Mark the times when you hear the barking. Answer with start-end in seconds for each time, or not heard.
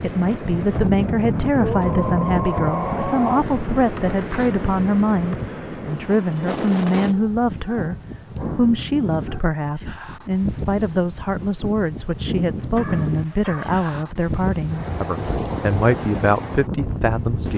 1.6-3.5, 7.1-9.4, 12.8-14.0.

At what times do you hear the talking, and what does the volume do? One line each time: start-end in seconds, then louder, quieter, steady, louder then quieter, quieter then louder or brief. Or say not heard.
0.0-17.5 steady.